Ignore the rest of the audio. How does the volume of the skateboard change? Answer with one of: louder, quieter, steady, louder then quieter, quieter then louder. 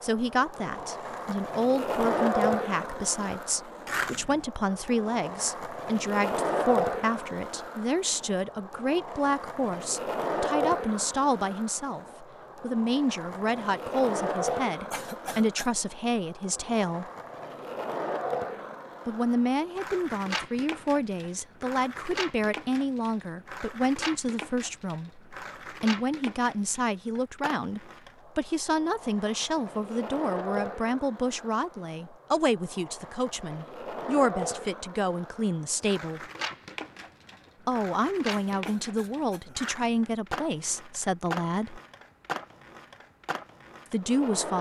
quieter.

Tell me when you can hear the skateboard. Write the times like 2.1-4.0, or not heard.
0.0-44.5.